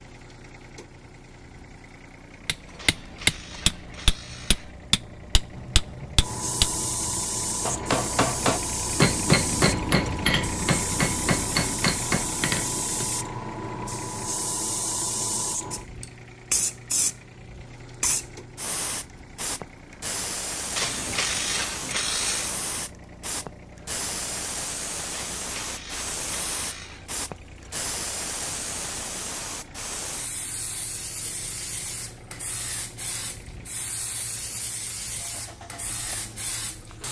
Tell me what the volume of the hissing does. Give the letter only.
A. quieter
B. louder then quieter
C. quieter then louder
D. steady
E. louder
A.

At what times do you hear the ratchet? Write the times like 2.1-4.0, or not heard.
2.8-4.8, 20.8-22.6, 25.1-27.1.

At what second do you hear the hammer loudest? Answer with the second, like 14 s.
9 s.